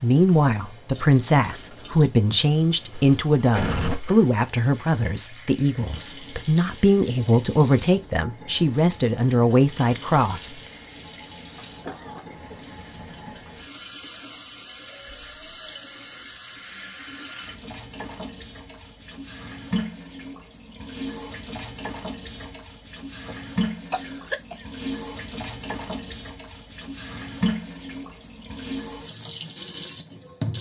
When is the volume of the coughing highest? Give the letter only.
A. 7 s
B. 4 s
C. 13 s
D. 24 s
B.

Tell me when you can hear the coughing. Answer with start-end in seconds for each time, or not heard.
2.9-4.2, 11.8-12.3, 23.2-24.6.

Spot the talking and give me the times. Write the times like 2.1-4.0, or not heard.
0.0-10.5.